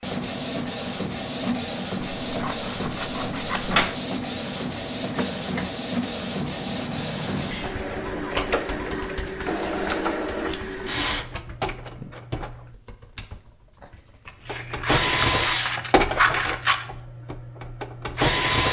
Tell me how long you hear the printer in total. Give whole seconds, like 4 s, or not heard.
17 s.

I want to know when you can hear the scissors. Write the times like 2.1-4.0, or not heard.
2.2-3.8, 10.4-10.8, 14.2-16.9.